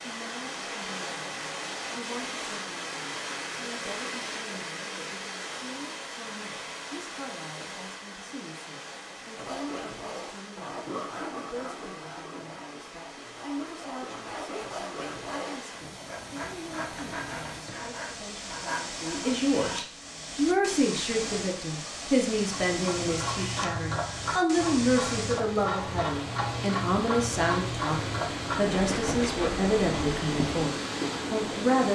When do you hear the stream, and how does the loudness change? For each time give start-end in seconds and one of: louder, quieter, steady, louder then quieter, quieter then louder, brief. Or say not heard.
0.0-31.9 quieter then louder.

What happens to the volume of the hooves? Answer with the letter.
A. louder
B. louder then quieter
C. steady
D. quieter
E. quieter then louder
C.